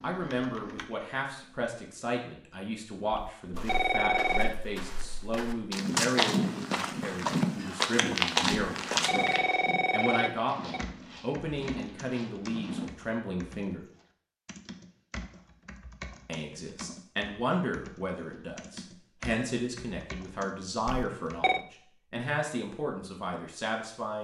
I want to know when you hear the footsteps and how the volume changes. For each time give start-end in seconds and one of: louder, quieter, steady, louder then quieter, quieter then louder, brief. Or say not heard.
3.5-12.8 louder then quieter.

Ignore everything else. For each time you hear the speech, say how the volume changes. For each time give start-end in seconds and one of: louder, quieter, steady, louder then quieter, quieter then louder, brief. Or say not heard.
0.0-13.8 steady
16.2-24.2 steady.